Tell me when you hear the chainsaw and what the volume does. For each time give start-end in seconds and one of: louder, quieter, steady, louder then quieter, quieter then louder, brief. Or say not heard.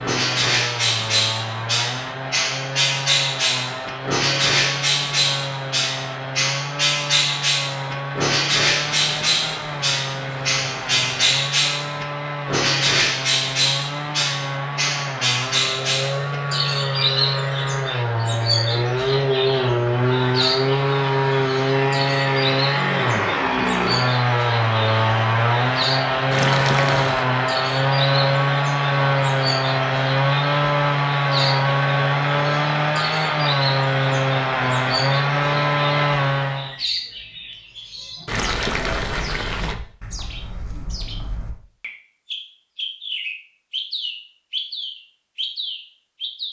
0.0-36.8 louder.